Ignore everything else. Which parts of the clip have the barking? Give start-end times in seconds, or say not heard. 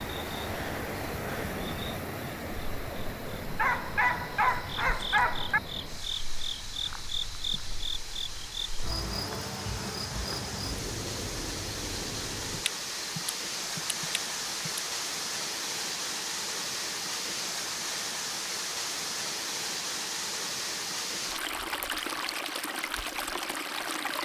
3.5-5.6.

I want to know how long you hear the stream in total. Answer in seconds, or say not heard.
24 s.